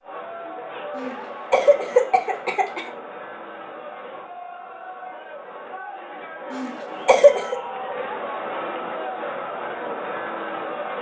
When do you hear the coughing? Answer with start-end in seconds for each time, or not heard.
0.9-2.9, 6.5-7.5.